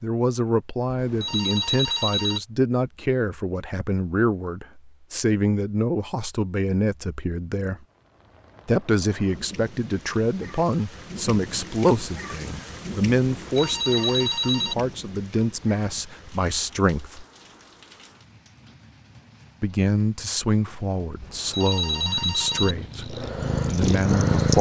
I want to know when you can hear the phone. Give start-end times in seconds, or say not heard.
0.9-2.4, 13.3-14.8, 21.2-22.8.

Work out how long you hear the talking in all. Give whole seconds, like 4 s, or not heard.
21 s.